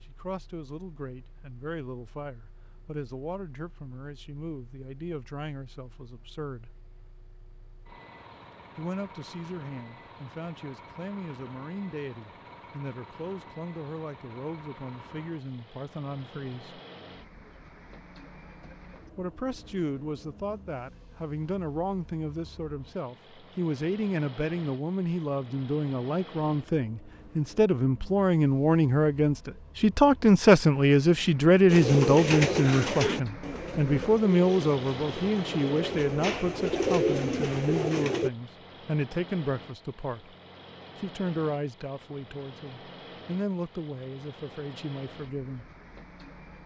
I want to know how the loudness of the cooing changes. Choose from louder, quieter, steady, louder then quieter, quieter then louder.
quieter then louder.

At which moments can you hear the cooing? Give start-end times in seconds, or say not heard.
31.6-38.3.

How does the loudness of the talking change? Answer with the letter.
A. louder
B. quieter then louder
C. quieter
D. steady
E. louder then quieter
E.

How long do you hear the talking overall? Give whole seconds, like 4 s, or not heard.
41 s.